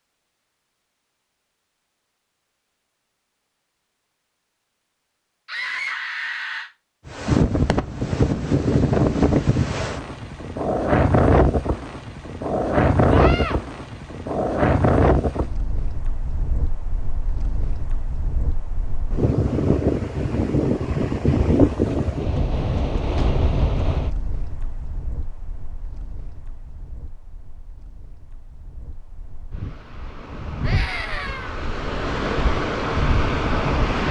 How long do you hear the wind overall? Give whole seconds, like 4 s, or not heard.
27 s.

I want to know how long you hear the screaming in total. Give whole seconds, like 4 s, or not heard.
3 s.